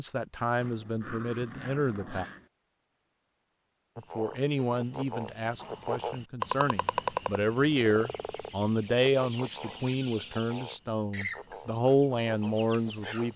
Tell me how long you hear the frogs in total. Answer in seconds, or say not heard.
9 s.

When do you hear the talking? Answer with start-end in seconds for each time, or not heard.
0.0-2.2, 4.0-13.3.